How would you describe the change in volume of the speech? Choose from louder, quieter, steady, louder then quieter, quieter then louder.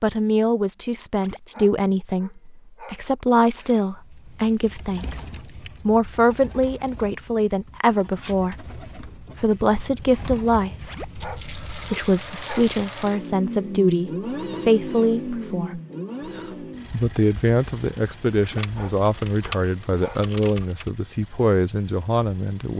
steady.